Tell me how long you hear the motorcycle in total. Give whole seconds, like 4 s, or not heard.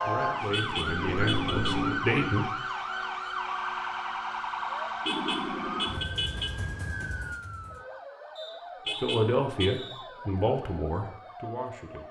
2 s.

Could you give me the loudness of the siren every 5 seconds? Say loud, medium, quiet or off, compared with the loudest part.
loud, medium, quiet.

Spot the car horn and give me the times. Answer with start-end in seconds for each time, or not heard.
0.5-1.8, 5.0-6.5, 8.8-9.7.